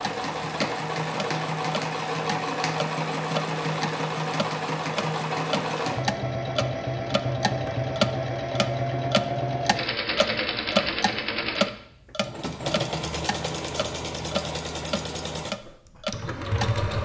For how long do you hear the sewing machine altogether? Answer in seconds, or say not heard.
17 s.